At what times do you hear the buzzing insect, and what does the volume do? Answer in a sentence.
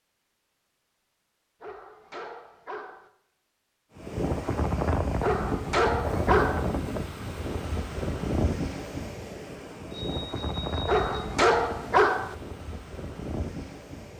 You can't hear the buzzing insect here.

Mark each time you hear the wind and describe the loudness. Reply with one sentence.
You can hear the wind from 4.0 to 14.1 s, getting quieter.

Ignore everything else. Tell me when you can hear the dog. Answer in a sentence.
You can hear the dog from 1.6 to 3.1 s, from 5.2 to 6.7 s and from 10.8 to 12.3 s.